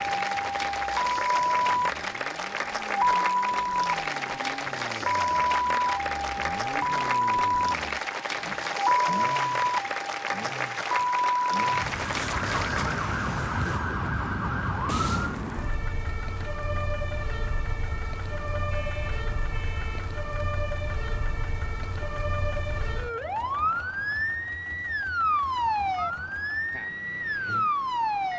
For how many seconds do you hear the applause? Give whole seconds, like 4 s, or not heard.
13 s.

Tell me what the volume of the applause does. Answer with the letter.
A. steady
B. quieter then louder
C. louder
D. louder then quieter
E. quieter
A.